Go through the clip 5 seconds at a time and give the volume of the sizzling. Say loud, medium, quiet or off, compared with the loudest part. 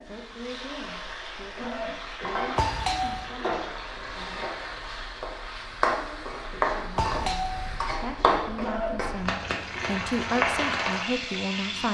medium, loud, loud.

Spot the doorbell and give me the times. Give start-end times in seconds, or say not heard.
2.5-3.3, 7.0-7.8.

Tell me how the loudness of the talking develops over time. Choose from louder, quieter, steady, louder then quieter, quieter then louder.
louder.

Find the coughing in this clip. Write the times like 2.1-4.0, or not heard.
1.6-2.4, 8.6-9.1.